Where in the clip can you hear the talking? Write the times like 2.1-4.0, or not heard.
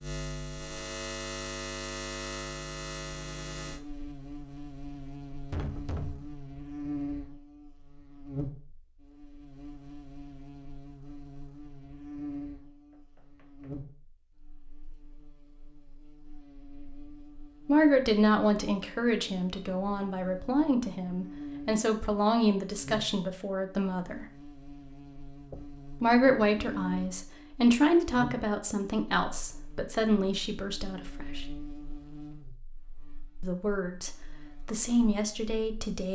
17.6-24.2, 26.0-31.4, 33.4-36.0.